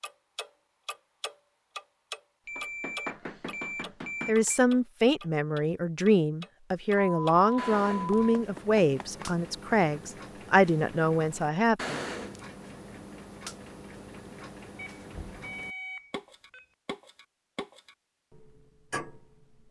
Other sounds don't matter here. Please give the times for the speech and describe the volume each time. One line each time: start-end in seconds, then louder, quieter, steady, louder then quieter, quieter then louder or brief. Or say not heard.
4.2-12.0 steady.